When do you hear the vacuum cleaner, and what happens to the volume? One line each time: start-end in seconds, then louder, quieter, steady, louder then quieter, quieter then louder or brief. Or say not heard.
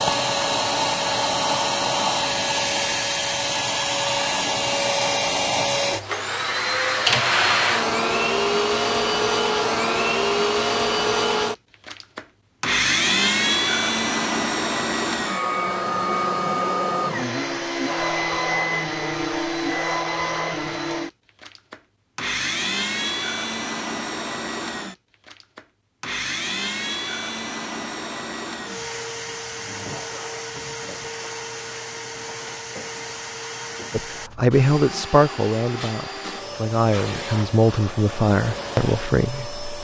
0.0-39.7 quieter.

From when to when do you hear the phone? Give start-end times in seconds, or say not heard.
not heard.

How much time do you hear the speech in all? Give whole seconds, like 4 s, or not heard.
6 s.